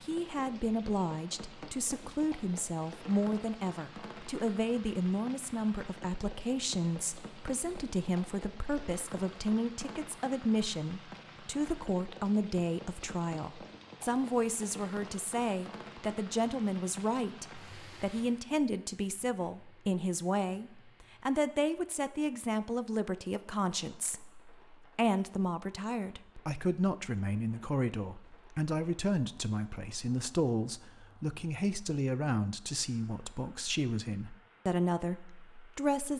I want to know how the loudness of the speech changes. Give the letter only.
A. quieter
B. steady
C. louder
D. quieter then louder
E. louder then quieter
B.